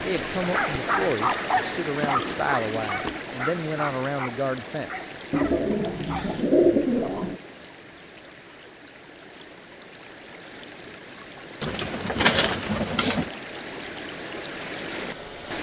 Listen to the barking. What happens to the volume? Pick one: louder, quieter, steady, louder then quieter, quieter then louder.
quieter.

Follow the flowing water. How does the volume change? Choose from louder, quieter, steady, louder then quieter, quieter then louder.
quieter then louder.